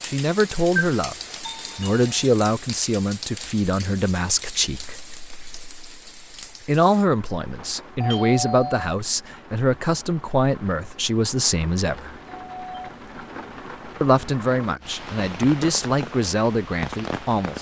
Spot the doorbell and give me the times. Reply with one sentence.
The doorbell can be heard from 0.7 to 2.2 s, from 8.0 to 8.9 s and from 12.2 to 12.9 s.